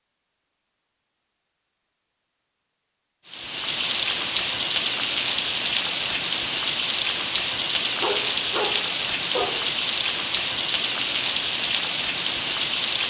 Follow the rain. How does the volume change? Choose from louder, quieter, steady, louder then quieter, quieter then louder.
steady.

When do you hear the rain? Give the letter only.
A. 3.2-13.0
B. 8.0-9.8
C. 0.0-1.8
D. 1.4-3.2
A.